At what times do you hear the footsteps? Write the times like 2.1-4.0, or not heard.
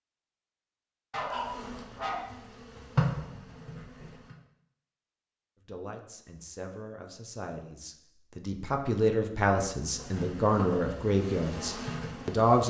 not heard.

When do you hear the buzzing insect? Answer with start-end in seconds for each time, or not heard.
1.2-4.3, 9.8-12.6.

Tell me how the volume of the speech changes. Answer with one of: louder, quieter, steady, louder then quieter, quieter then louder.
louder.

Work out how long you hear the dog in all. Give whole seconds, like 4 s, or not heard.
2 s.